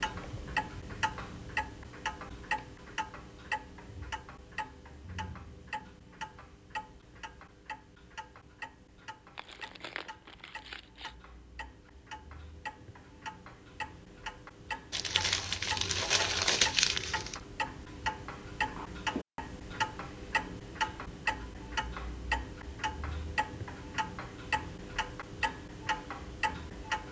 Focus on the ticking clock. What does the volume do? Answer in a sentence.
The volume of the ticking clock goes down, then up.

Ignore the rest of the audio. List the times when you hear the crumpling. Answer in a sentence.
The crumpling can be heard from 9.3 to 11.2 s and from 14.9 to 17.4 s.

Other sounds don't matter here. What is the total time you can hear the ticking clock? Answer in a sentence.
The ticking clock can be heard for 27 seconds in total.